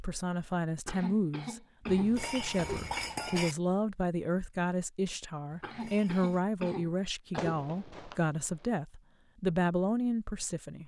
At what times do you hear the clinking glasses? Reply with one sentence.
You can hear the clinking glasses from 1.9 to 3.5 s and from 5.7 to 6.4 s.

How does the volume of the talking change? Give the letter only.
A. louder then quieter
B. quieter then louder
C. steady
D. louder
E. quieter
C.